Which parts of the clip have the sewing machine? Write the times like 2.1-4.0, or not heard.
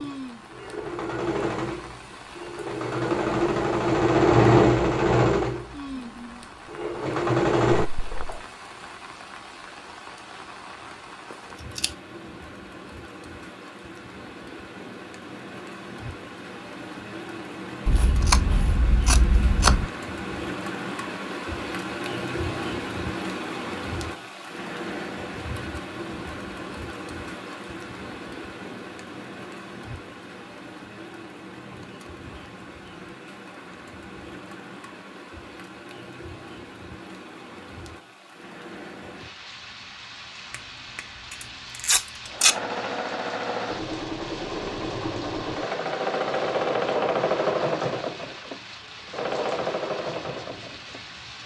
0.0-8.4, 42.2-51.0.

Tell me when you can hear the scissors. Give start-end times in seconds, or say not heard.
11.3-11.9, 17.9-19.9, 40.5-42.5.